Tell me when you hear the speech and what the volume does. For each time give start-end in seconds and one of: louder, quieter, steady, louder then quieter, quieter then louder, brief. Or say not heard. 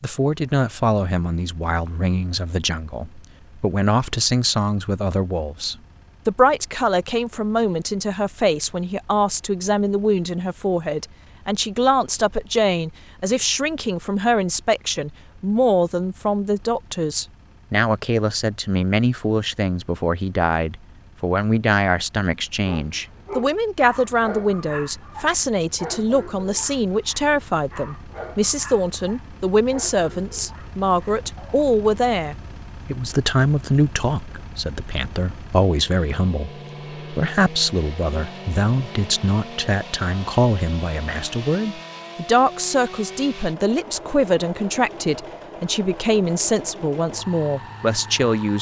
0.0-48.5 steady.